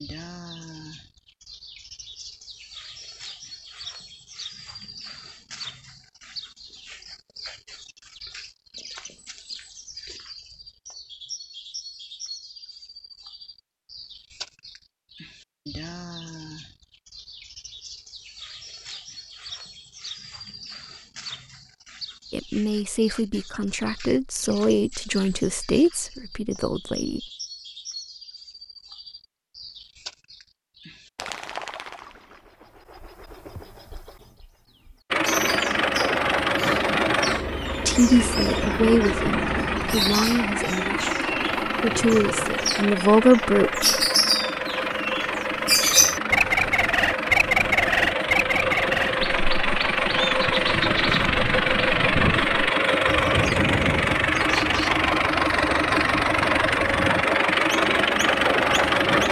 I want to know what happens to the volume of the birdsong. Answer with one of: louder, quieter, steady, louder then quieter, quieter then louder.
louder.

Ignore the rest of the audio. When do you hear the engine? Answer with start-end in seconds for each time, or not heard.
35.1-59.2.